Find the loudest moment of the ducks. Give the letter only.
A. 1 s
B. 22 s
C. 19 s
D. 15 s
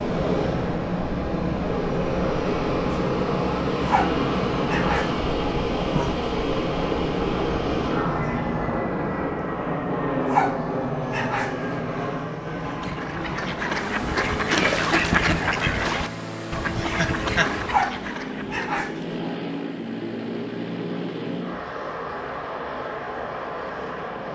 D.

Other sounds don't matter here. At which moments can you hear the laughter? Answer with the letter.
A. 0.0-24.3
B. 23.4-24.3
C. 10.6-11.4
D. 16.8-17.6
D.